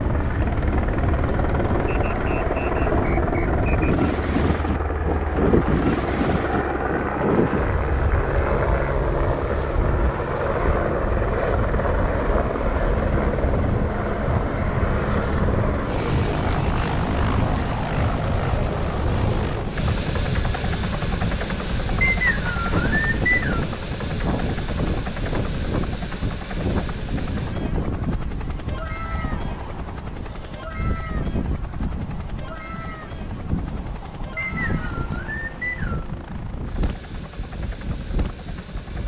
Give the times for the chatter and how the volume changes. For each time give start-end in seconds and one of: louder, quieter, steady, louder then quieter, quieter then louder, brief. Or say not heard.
not heard.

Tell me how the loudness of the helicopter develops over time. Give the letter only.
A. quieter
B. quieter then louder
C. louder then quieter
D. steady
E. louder
A.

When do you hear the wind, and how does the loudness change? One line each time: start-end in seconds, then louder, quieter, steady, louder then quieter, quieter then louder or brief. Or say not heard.
0.0-39.0 quieter.